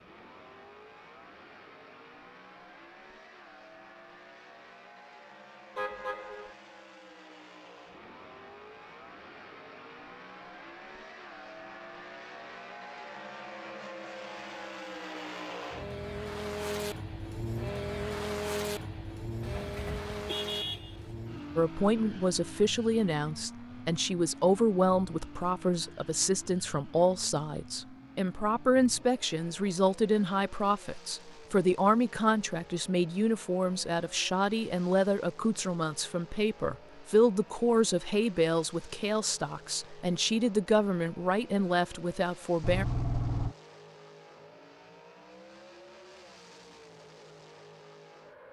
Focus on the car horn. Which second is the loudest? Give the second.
43 s.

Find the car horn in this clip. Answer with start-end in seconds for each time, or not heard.
5.8-6.5, 19.4-21.2, 42.6-43.5.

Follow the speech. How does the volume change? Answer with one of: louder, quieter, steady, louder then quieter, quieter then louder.
steady.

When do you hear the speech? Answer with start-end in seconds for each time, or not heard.
21.6-42.9.